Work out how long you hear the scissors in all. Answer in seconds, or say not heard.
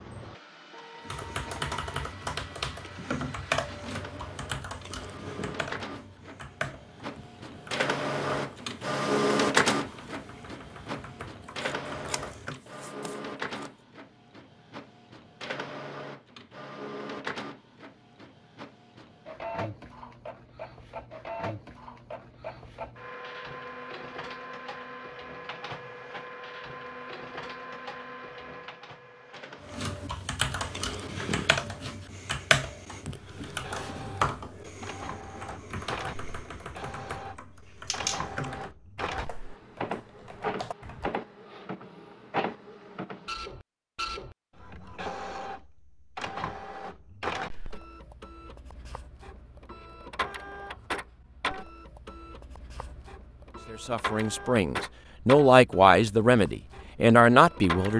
3 s.